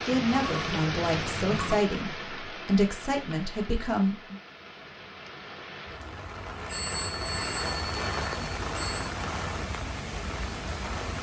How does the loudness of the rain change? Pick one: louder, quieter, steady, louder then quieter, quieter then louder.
quieter then louder.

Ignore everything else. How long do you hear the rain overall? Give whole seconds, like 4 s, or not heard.
11 s.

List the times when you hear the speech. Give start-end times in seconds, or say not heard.
0.1-4.3.